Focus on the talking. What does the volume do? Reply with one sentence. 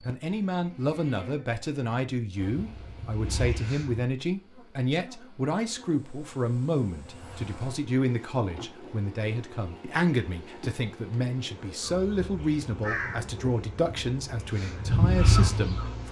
The volume of the talking stays about the same.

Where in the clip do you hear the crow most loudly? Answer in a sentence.
The volume of the crow peaks at 15 seconds.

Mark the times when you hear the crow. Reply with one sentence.
The crow can be heard from 2.4 to 4.0 s and from 11.8 to 16.0 s.